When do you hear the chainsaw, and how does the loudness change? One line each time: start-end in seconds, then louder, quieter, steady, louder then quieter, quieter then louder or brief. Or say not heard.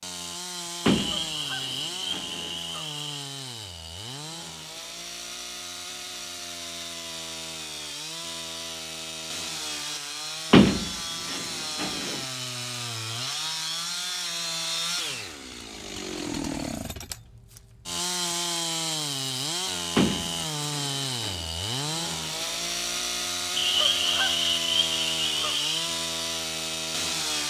0.0-27.4 louder.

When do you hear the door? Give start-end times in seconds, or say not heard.
0.8-2.5, 10.5-12.2, 19.9-21.4.